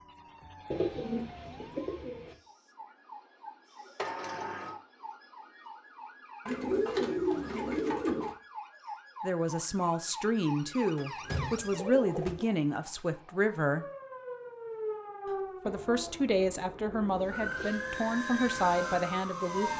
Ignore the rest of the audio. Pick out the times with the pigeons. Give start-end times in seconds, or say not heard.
0.7-2.4, 6.5-8.3, 10.9-12.5, 15.7-17.6.